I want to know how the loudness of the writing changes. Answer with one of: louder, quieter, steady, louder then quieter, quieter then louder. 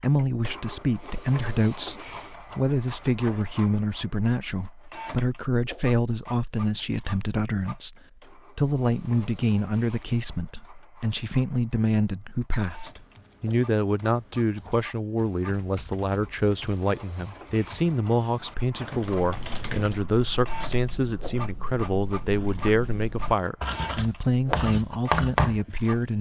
louder.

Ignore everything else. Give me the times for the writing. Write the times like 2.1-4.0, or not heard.
19.2-25.6.